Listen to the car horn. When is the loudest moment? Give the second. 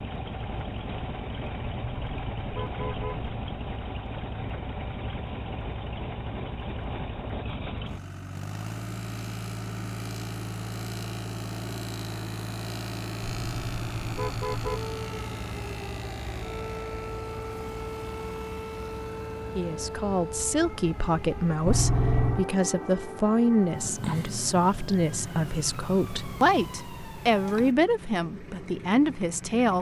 22 s.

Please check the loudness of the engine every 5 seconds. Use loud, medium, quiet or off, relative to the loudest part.
loud, loud, loud, medium, quiet, medium.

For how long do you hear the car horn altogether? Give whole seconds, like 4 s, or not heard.
4 s.